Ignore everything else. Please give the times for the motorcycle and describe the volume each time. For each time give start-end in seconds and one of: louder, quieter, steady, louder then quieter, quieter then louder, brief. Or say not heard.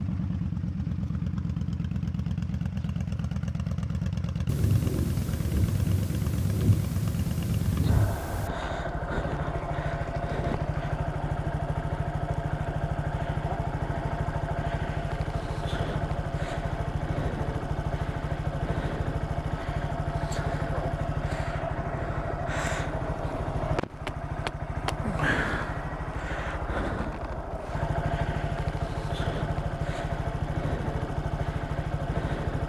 0.0-32.6 steady.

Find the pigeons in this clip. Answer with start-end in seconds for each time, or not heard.
not heard.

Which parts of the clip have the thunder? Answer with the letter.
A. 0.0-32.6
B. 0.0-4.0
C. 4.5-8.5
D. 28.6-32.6
C.